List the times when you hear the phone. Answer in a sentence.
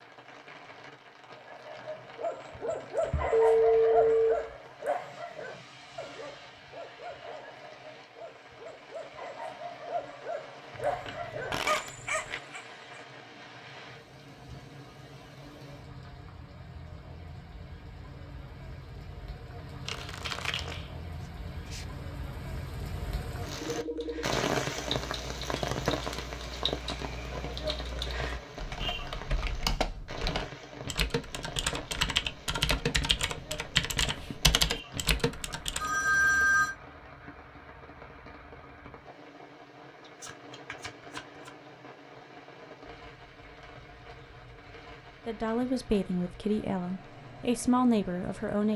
You can hear the phone from 3.0 to 4.5 s, from 23.6 to 24.2 s and from 35.8 to 36.8 s.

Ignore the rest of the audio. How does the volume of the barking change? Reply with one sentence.
The volume of the barking goes down, then up.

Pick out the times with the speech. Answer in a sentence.
You can hear the speech from 45.2 to 48.7 s.